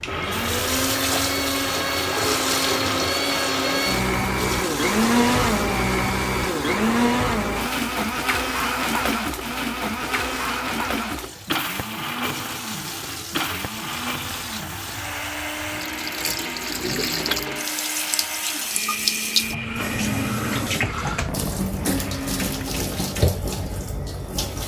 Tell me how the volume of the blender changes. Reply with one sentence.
The loudness of the blender goes down.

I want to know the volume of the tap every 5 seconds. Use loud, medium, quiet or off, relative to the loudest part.
loud, medium, medium, loud, loud.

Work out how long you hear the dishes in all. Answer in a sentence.
The dishes can't be heard in this clip.